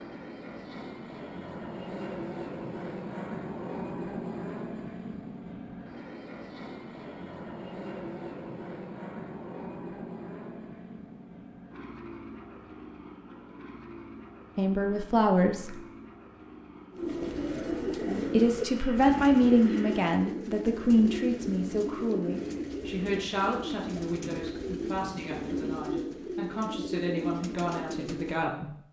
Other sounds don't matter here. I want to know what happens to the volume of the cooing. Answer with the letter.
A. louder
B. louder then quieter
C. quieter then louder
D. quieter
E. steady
E.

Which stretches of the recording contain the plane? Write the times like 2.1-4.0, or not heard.
0.0-20.1.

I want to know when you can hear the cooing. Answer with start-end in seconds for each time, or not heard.
16.9-28.4.